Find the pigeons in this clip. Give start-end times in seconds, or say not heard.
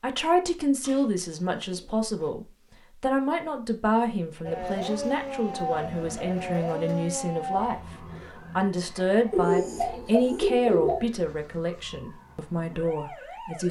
0.8-2.2, 4.5-7.1, 9.3-11.1.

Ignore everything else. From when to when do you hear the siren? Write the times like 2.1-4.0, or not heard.
4.5-13.6.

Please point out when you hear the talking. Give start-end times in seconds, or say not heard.
0.0-7.8, 8.6-13.6.